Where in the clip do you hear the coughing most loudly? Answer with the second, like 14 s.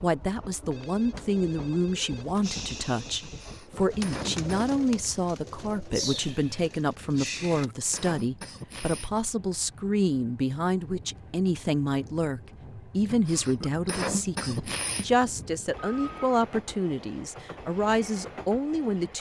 14 s.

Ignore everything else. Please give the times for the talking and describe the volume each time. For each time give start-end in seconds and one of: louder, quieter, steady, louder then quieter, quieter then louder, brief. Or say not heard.
0.0-19.1 steady.